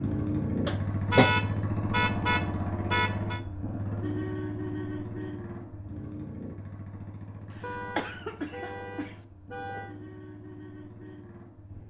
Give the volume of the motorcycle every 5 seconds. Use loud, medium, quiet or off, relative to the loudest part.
loud, medium, quiet.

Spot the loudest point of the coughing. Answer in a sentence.
The volume of the coughing peaks at 1 second.